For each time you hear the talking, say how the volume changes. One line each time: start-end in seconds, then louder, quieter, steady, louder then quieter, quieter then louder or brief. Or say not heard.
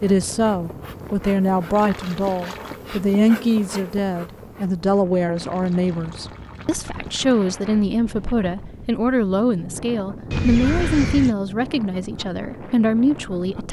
0.0-13.6 steady.